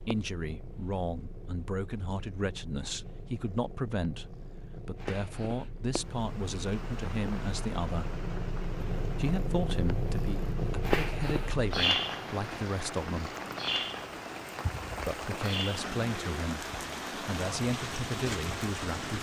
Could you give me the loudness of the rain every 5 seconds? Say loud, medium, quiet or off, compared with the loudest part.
off, medium, medium, loud.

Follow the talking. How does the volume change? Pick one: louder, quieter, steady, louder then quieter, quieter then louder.
steady.